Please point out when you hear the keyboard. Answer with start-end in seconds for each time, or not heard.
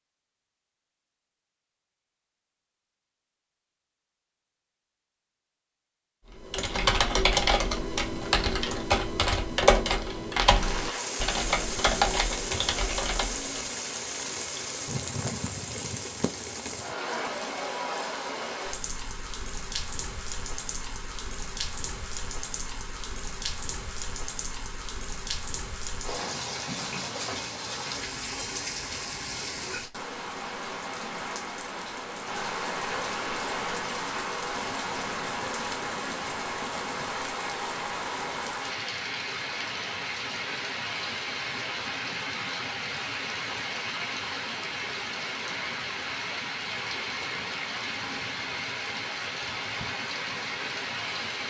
6.3-13.7.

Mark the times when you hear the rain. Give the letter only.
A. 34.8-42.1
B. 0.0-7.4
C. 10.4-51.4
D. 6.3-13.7
C.